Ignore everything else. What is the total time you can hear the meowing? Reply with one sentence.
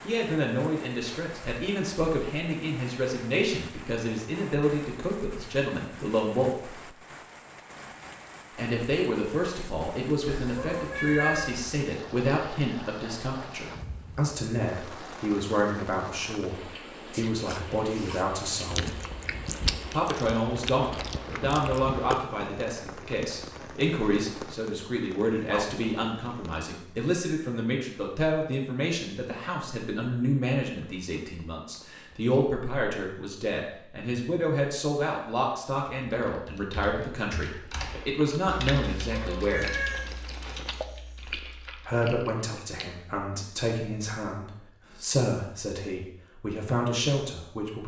The meowing can be heard for 3 seconds in total.